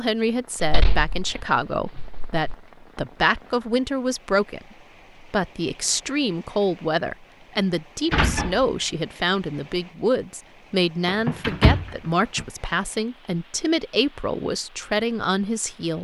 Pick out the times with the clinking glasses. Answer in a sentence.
You can't hear the clinking glasses here.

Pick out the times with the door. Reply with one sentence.
The door can be heard from 0.6 to 2.5 s, from 8.1 to 8.7 s and from 11.1 to 12.4 s.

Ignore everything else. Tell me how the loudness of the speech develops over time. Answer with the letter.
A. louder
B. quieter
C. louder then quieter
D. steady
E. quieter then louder
D.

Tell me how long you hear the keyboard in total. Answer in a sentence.
The keyboard can't be heard in this clip.